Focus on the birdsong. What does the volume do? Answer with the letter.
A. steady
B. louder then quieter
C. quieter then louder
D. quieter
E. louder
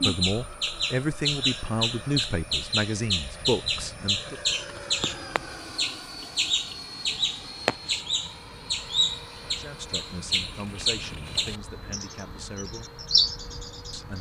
A.